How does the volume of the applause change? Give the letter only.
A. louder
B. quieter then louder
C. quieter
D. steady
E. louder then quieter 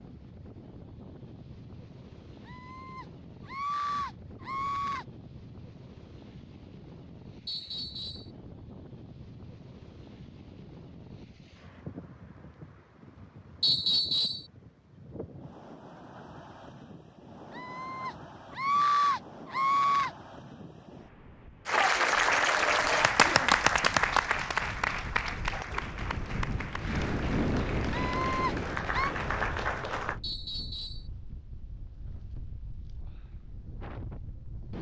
B.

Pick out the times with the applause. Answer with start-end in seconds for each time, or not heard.
21.6-30.2.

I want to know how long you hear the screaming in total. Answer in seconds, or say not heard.
6 s.